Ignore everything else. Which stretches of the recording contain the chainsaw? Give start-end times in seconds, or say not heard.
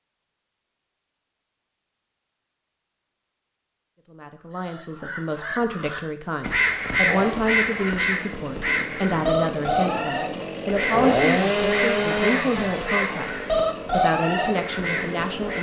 6.9-15.5.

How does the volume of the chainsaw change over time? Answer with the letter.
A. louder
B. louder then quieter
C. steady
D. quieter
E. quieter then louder
B.